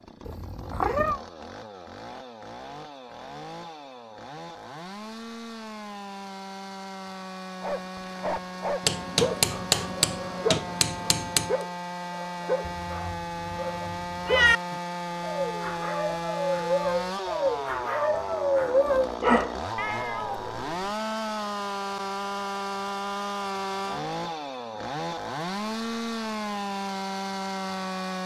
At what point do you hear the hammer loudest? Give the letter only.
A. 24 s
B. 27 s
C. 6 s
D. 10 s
D.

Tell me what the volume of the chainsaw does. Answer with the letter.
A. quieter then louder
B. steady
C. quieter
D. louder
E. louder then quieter
D.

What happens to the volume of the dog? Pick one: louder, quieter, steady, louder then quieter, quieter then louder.
louder.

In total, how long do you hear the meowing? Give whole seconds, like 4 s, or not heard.
4 s.